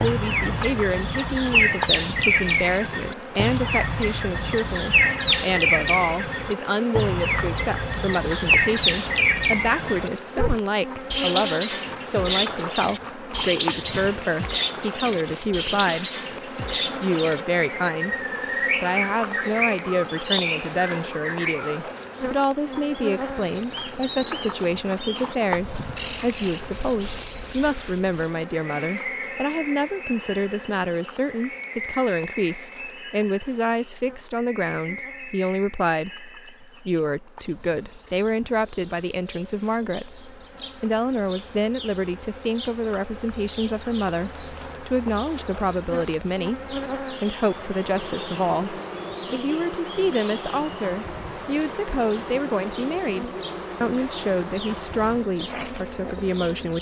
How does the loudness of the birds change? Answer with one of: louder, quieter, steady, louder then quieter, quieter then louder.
quieter.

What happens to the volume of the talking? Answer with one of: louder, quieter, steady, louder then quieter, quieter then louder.
steady.